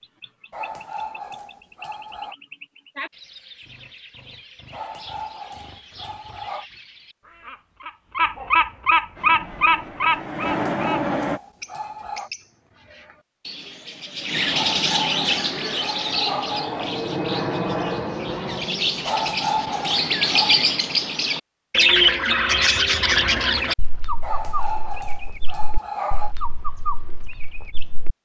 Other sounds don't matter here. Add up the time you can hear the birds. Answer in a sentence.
You can hear the birds for 28 seconds altogether.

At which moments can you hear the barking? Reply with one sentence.
You can hear the barking from 0.5 to 2.4 s, from 4.7 to 6.7 s, from 10.4 to 12.3 s, from 14.5 to 17.0 s, from 19.1 to 20.6 s and from 24.2 to 26.4 s.